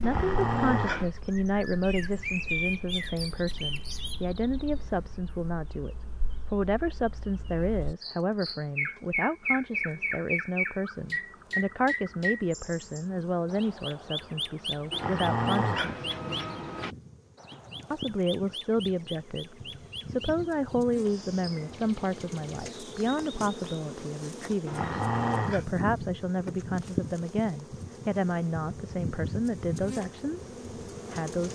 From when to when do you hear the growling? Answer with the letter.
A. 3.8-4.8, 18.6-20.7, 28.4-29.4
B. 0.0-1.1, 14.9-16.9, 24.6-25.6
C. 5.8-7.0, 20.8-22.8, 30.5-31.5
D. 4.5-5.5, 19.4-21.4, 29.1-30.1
B.